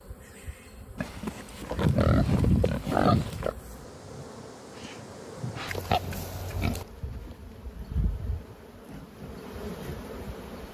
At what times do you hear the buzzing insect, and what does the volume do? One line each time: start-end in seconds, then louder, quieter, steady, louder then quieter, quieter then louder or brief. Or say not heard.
0.0-10.6 louder.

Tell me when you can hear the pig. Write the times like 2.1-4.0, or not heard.
0.9-3.5, 5.7-6.8.